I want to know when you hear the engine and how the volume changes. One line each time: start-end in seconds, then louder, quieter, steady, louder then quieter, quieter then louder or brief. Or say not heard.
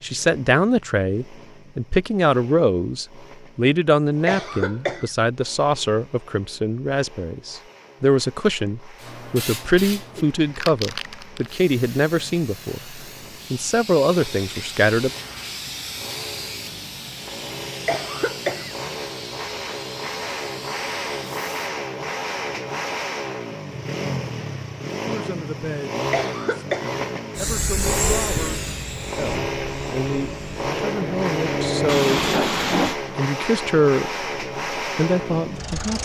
0.0-35.9 louder.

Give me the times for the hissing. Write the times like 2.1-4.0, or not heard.
9.0-21.5, 27.4-33.0.